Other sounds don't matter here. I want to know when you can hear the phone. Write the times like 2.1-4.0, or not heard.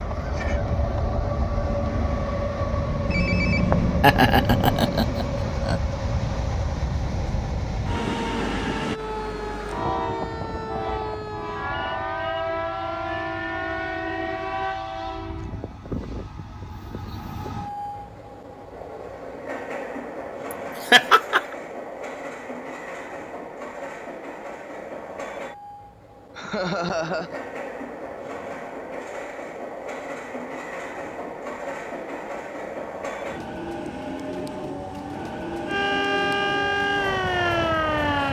3.0-5.1.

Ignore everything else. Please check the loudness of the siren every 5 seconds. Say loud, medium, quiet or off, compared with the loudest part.
medium, medium, medium, off, off, off, off, loud.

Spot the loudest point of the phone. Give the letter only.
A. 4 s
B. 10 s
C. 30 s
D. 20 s
A.